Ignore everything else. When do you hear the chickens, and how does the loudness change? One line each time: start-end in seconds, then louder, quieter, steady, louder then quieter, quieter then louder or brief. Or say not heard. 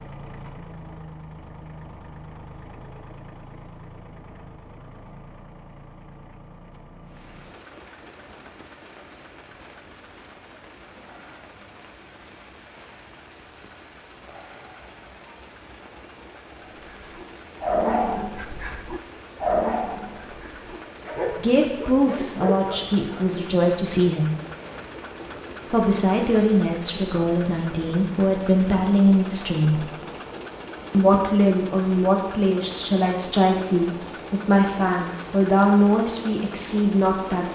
not heard.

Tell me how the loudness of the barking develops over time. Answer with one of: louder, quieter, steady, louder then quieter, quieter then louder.
quieter.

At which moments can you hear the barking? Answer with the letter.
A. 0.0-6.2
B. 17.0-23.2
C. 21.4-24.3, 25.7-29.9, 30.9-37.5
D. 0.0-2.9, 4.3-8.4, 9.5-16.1
B.